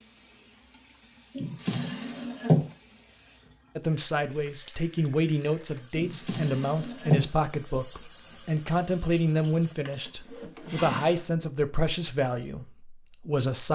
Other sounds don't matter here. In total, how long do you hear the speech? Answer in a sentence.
The speech can be heard for 10 seconds in total.